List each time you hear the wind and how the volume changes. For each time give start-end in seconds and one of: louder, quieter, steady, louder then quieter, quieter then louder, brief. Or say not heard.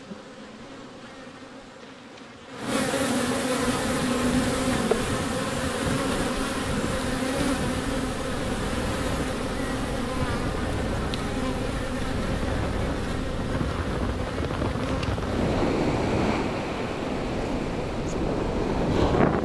3.5-19.3 louder.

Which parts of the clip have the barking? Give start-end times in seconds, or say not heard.
not heard.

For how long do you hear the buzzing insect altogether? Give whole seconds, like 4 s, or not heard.
19 s.